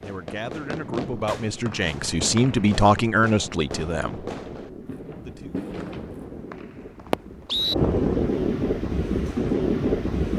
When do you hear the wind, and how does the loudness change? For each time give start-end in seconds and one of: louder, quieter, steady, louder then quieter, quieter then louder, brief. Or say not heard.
0.0-10.3 louder.